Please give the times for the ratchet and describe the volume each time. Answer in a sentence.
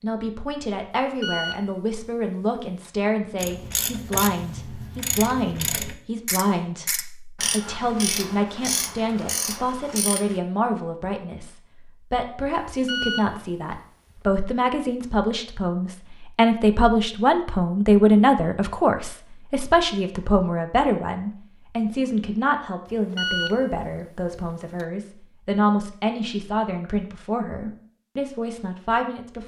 The ratchet can be heard from 3.4 to 10.4 s, at a steady volume.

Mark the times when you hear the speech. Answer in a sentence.
You can hear the speech from 0.0 to 29.4 s.